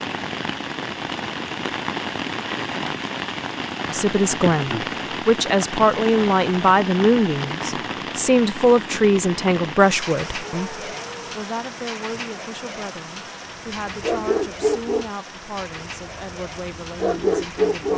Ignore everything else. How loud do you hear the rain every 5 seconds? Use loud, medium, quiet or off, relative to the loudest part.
loud, loud, medium, medium.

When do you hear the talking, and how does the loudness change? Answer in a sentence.
You can hear the talking from 3.9 to 17.9 s, getting quieter.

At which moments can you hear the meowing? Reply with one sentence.
You can hear the meowing from 10.4 to 11.3 s.